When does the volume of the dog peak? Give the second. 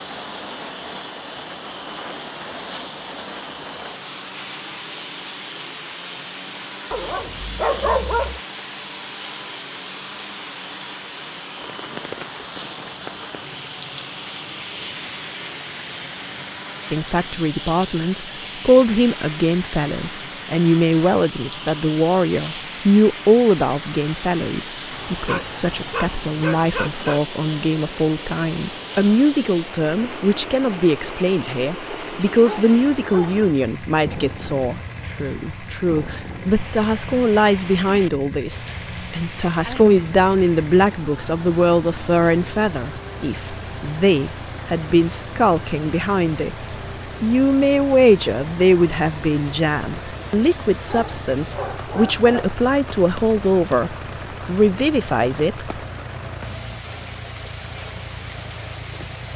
8 s.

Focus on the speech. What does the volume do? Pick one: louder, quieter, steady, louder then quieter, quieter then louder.
steady.